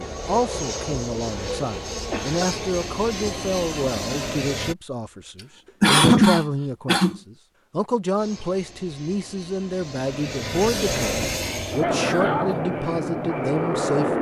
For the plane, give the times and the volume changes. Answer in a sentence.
You can hear the plane from 0.0 to 4.8 s, at a steady volume; and from 8.2 to 14.1 s, getting louder.